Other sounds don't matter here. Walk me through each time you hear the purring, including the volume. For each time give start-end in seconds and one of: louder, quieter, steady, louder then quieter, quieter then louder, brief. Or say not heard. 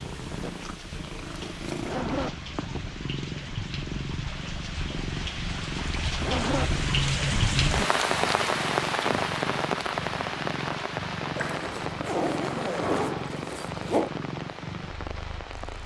0.0-15.8 steady.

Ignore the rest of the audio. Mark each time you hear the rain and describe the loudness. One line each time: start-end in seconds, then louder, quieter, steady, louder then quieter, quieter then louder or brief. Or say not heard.
0.0-15.8 louder then quieter.